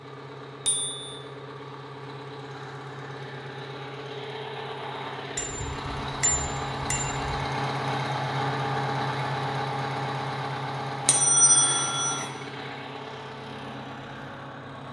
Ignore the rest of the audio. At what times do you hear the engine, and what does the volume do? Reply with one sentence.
You can hear the engine from 0.0 to 14.8 s, getting louder then quieter.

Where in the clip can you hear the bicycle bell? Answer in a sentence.
The bicycle bell can be heard from 0.7 to 1.1 s, from 5.3 to 7.4 s and from 11.1 to 12.3 s.